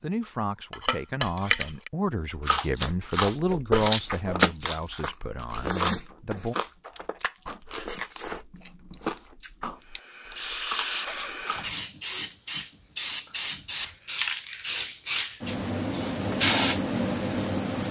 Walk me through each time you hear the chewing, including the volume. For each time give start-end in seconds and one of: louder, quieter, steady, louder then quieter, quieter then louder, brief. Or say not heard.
2.3-11.7 quieter.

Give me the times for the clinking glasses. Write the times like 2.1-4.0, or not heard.
0.7-1.9.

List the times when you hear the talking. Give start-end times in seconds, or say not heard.
0.0-6.5.